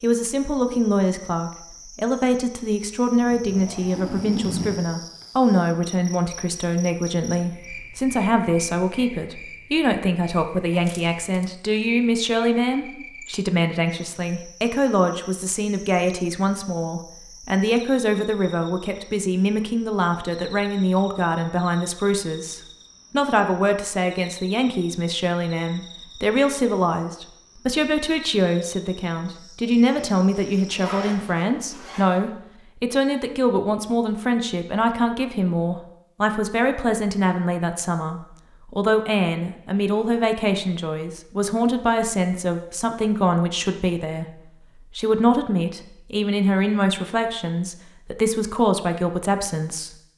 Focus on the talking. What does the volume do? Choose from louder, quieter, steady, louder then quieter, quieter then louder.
steady.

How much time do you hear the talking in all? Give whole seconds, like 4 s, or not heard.
50 s.